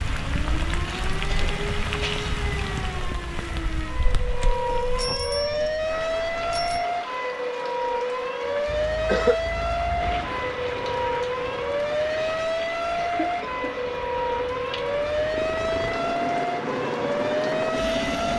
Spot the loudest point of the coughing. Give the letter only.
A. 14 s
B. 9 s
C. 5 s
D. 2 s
B.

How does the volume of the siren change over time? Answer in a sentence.
The volume of the siren goes up.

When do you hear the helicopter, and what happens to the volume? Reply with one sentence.
The helicopter can be heard from 9.9 to 18.3 s, getting quieter then louder.